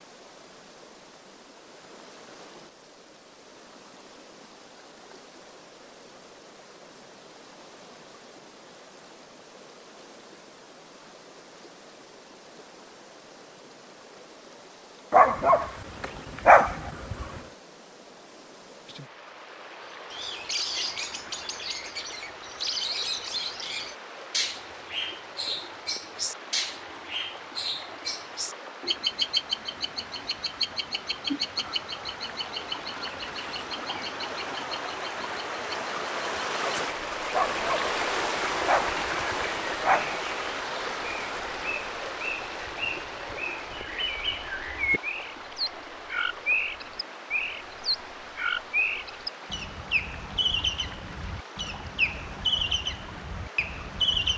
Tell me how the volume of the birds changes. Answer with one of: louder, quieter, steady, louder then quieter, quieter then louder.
quieter then louder.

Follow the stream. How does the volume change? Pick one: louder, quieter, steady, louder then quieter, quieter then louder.
louder then quieter.